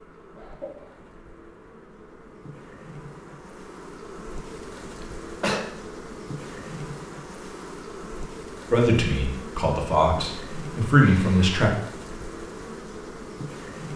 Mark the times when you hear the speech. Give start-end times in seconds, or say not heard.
8.7-11.7.